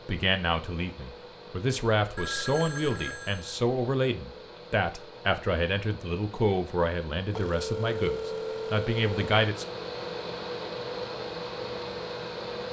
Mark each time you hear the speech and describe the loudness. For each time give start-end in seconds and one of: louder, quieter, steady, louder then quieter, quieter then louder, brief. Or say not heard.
0.1-9.7 steady.